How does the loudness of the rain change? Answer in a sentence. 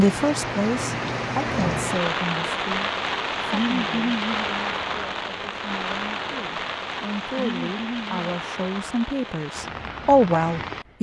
The volume of the rain goes down.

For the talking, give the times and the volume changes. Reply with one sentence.
The talking can be heard from 0.0 to 10.9 s, getting quieter then louder.